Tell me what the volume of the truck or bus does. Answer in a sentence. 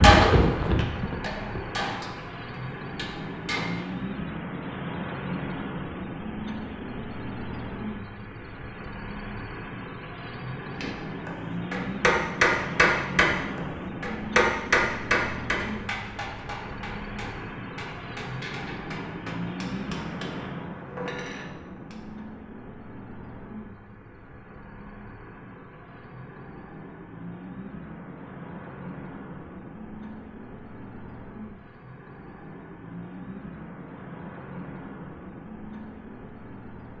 The loudness of the truck or bus goes down.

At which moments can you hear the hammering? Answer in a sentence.
The hammering can be heard from 0.0 to 4.0 s and from 10.8 to 22.0 s.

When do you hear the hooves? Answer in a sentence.
The hooves can be heard from 0.0 to 1.9 s.